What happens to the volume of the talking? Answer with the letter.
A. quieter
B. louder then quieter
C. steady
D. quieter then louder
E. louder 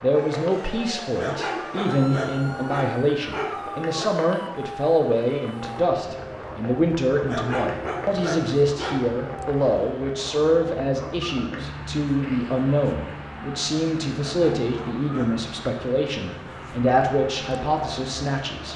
C.